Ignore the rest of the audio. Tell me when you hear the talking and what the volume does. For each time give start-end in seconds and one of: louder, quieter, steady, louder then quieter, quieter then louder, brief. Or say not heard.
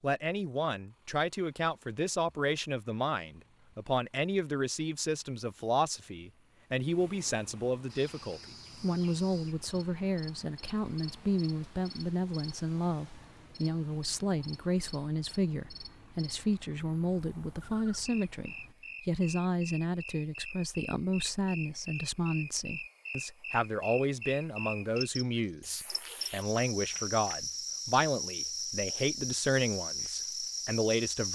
0.0-31.3 steady.